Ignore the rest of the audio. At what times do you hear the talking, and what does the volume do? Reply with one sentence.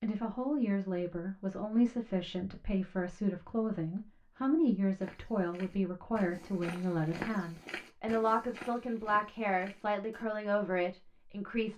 You can hear the talking from 0.0 to 11.7 s, at a steady volume.